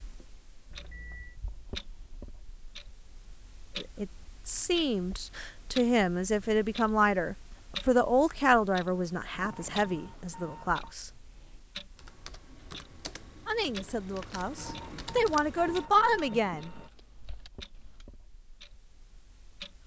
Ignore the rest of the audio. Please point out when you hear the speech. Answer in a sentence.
You can hear the speech from 3.8 to 11.1 s and from 13.4 to 16.7 s.